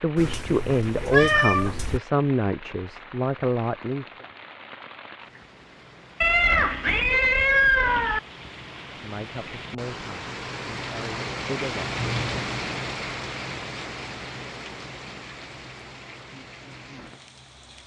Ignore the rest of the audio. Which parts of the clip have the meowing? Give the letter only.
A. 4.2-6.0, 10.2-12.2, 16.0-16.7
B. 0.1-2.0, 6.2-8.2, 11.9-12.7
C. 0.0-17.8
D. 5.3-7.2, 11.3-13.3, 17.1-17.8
B.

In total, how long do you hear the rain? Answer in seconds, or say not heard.
18 s.